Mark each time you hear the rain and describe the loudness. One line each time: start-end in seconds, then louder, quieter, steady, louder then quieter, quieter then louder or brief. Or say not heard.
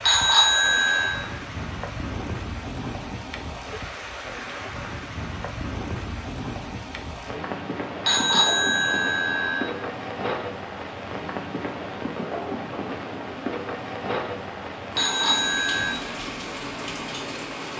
0.0-17.7 steady.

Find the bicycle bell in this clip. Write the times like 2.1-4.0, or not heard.
0.0-1.2, 8.0-9.7, 14.9-15.9.